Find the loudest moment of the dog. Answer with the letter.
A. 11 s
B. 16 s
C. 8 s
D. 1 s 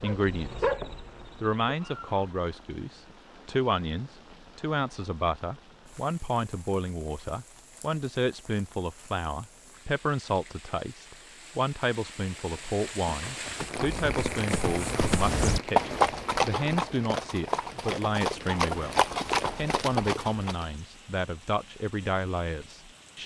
D.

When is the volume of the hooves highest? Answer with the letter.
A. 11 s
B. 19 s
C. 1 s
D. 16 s
D.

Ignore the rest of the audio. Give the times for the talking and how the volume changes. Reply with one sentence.
You can hear the talking briefly from 0.0 to 0.7 s; and from 1.4 to 23.2 s, at a steady volume.